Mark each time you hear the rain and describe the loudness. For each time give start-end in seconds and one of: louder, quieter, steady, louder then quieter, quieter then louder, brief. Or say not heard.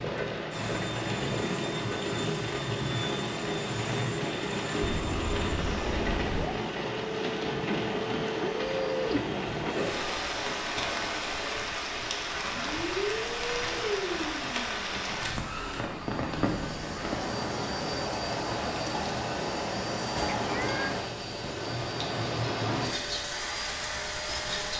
0.0-24.7 steady.